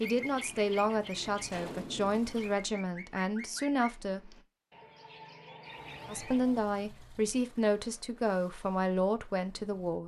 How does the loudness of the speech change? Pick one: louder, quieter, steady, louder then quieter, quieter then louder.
steady.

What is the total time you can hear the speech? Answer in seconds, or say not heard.
8 s.